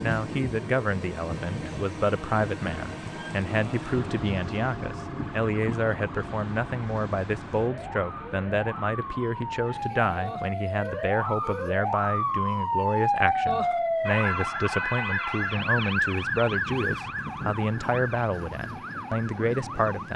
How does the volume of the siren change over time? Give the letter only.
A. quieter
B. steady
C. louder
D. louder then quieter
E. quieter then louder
D.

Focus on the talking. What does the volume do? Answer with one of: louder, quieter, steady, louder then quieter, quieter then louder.
steady.